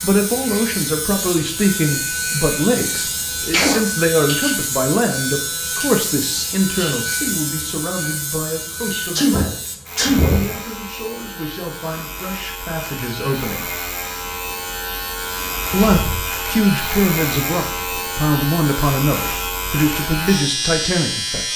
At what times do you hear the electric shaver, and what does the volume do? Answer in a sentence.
The electric shaver can be heard from 0.0 to 21.5 s, getting quieter then louder.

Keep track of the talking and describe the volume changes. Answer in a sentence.
The volume of the talking goes down, then up.